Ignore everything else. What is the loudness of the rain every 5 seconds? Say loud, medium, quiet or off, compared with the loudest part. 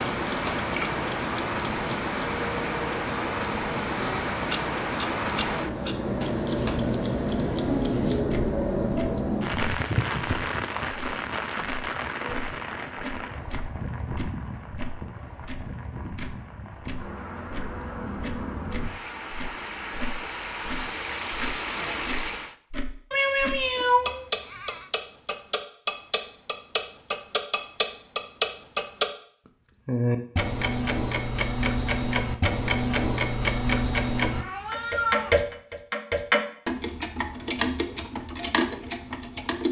loud, loud, medium, medium, medium, off, off, off.